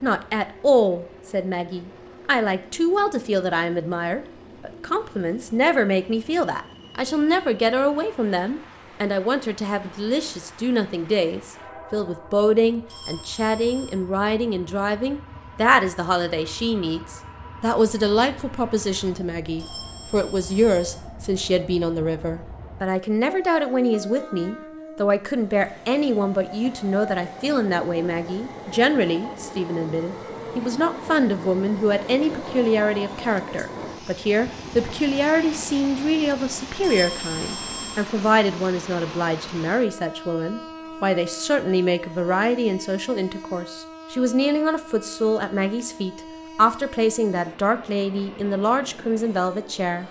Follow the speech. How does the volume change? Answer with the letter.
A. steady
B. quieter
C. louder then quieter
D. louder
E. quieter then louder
A.